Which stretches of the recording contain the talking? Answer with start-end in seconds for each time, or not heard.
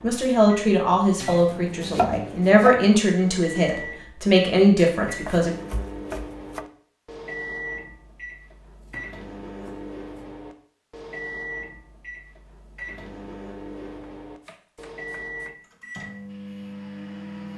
0.0-5.5.